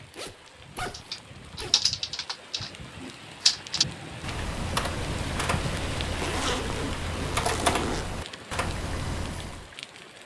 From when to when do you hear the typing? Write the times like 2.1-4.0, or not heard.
0.8-9.7.